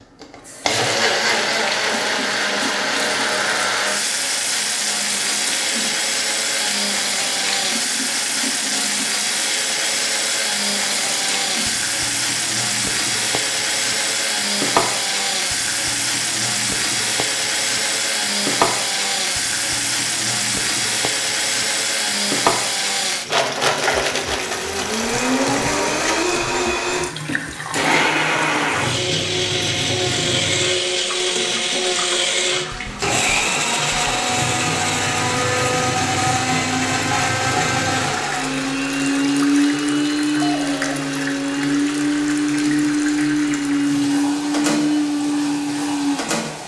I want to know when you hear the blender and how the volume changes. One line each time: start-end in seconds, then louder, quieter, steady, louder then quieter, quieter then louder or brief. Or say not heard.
0.2-46.6 steady.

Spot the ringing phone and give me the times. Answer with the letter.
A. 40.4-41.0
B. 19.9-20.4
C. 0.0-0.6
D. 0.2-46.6
A.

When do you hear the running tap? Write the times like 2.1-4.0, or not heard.
0.2-46.6.